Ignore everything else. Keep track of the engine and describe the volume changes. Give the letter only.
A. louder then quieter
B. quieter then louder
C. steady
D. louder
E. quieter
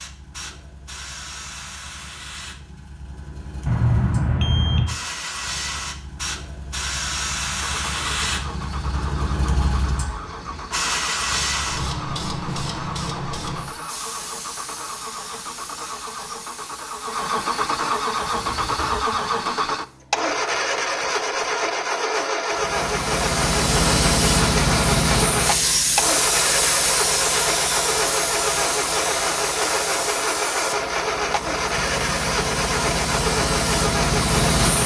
D.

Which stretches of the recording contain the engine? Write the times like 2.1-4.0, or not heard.
7.5-34.8.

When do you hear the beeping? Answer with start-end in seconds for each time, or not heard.
3.6-5.0.